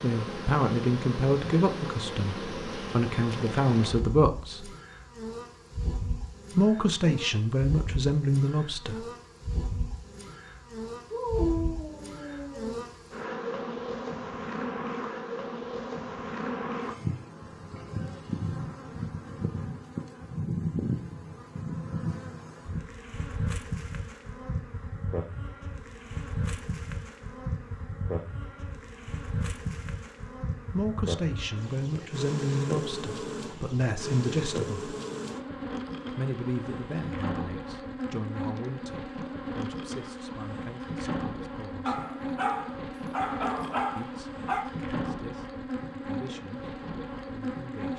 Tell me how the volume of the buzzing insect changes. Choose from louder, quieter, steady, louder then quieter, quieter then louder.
steady.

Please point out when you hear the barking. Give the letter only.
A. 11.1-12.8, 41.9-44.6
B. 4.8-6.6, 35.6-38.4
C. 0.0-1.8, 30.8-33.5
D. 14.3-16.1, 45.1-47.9
A.